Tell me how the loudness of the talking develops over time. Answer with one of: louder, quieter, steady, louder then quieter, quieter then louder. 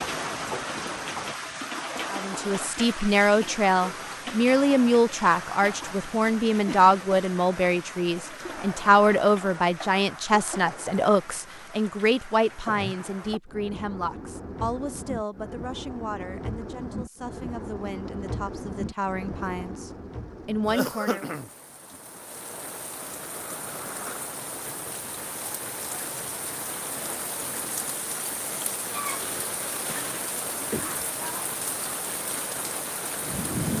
quieter.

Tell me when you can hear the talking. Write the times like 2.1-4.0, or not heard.
2.1-21.2.